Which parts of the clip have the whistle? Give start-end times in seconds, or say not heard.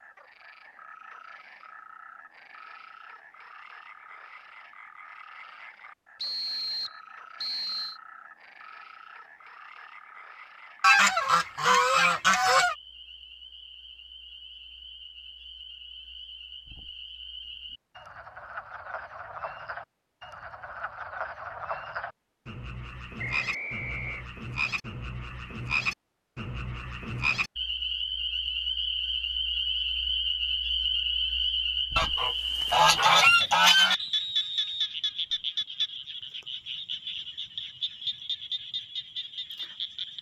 6.2-8.0, 23.1-24.2, 34.0-35.4.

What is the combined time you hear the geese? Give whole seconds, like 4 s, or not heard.
4 s.